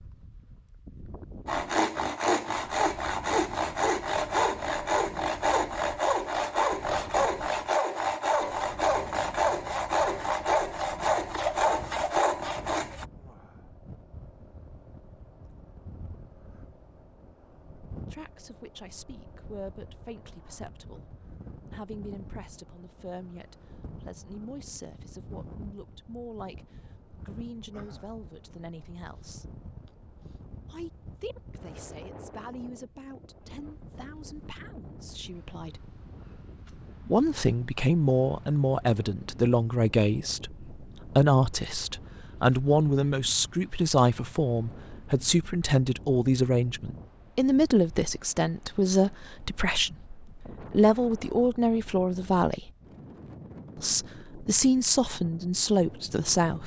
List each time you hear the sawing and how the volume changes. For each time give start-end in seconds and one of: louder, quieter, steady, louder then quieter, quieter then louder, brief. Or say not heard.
1.4-13.1 steady.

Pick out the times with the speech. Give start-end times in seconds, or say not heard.
18.1-21.1, 21.7-29.4, 30.7-35.9, 37.0-52.7, 53.8-56.6.